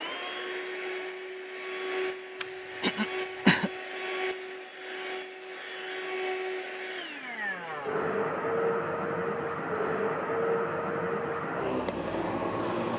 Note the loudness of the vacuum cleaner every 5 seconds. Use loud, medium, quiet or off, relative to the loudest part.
medium, loud, loud.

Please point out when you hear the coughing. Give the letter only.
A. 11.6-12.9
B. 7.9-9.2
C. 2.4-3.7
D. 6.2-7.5
C.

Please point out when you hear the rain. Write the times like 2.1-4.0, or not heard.
not heard.